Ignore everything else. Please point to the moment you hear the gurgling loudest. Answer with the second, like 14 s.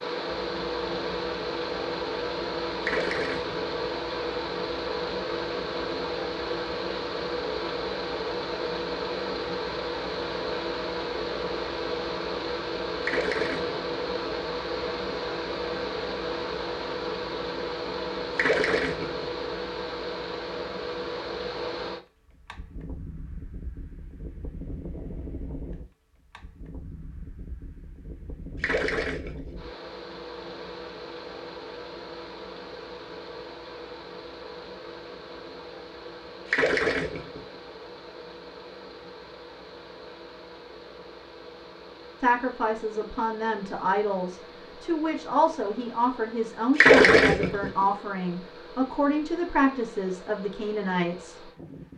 47 s.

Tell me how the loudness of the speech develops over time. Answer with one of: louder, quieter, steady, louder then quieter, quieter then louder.
steady.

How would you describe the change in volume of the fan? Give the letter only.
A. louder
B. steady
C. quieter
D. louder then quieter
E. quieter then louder
C.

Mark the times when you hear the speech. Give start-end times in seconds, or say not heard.
42.2-51.5.